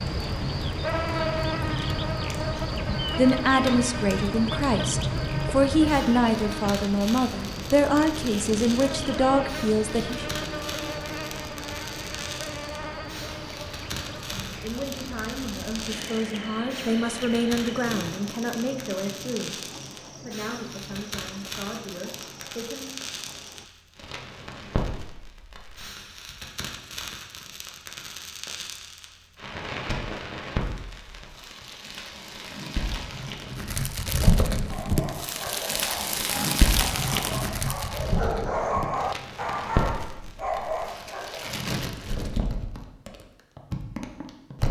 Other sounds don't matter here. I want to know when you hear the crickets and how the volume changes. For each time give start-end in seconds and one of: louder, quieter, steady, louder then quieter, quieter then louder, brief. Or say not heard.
0.0-23.7 quieter.